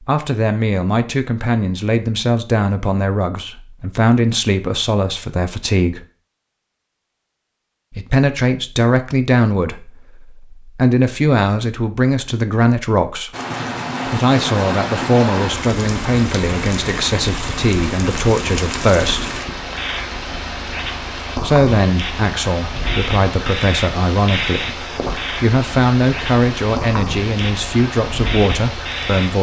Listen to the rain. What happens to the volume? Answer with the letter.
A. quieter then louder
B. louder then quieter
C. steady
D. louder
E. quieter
C.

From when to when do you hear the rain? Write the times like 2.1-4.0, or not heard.
13.3-29.3.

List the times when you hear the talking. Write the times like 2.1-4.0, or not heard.
0.0-6.0, 7.9-13.3, 14.1-19.4, 21.4-29.3.